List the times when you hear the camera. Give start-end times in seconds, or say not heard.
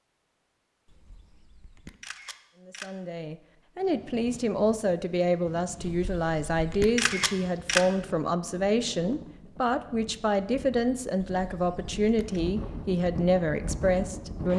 0.8-2.9, 5.8-7.8, 11.3-12.4.